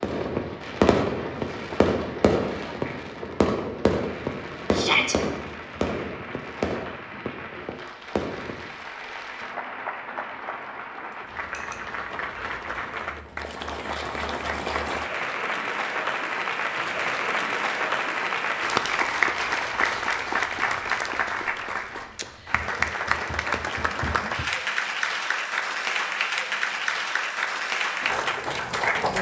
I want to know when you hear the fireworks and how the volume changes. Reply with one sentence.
The fireworks can be heard from 0.0 to 8.8 s, getting quieter.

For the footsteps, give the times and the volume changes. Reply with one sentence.
You can't hear the footsteps here.